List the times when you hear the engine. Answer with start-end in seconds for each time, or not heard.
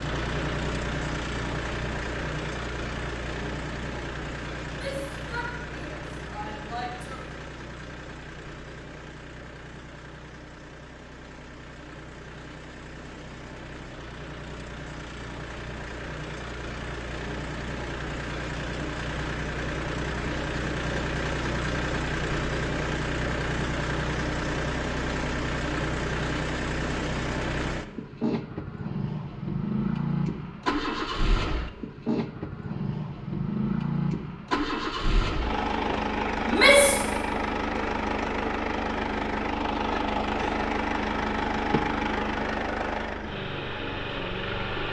0.0-44.8.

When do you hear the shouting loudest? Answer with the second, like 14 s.
37 s.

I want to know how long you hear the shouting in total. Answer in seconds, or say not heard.
3 s.